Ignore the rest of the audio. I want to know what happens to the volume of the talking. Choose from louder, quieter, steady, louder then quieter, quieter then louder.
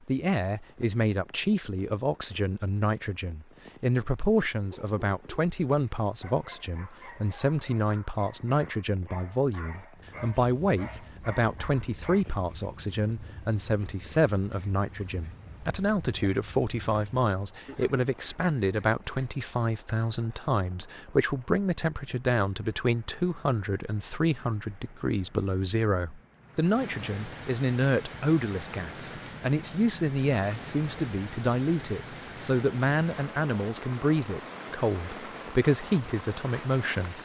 steady.